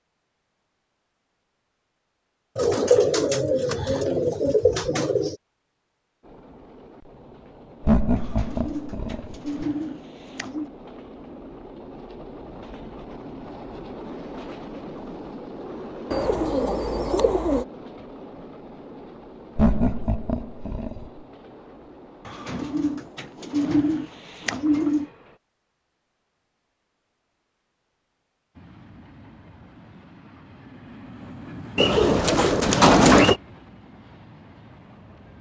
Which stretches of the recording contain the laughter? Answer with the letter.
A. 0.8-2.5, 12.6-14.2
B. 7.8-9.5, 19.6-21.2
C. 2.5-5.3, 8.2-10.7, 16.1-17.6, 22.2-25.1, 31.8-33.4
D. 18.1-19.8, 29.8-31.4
B.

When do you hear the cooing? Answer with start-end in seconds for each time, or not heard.
2.5-5.3, 8.2-10.7, 16.1-17.6, 22.2-25.1, 31.8-33.4.